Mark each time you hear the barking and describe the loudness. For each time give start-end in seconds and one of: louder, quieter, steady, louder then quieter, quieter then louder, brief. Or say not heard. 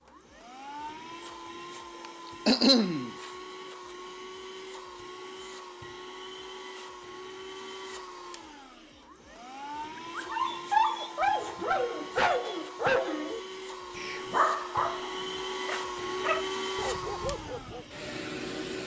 10.2-17.9 quieter.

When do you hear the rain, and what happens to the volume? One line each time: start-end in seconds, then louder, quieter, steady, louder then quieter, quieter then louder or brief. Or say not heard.
not heard.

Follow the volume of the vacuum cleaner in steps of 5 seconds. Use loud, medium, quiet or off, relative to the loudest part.
medium, medium, medium, loud.